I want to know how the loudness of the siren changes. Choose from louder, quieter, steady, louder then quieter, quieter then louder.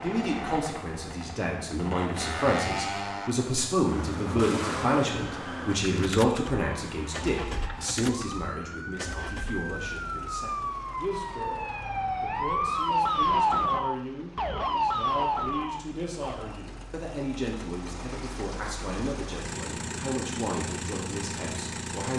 louder.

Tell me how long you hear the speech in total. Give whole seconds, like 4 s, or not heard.
22 s.